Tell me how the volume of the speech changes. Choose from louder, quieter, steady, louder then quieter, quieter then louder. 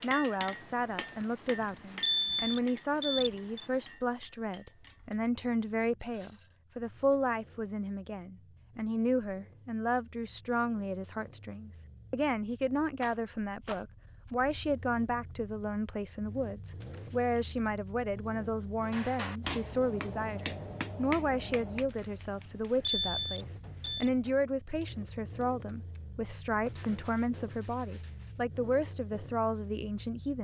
steady.